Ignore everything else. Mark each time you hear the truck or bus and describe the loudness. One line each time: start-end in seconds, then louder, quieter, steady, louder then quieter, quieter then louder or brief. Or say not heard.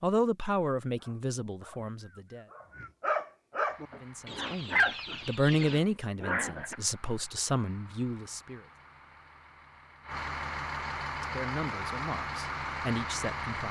3.6-13.6 louder.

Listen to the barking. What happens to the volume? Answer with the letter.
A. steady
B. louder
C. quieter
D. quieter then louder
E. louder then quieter
E.